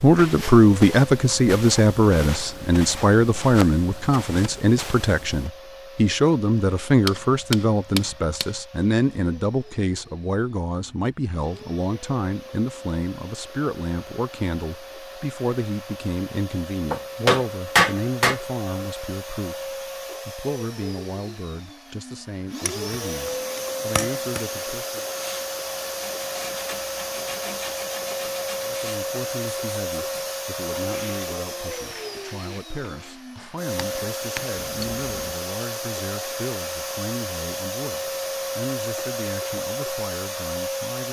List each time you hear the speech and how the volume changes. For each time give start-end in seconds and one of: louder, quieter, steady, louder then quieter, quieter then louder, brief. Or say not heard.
0.0-25.1 quieter
28.6-41.0 steady.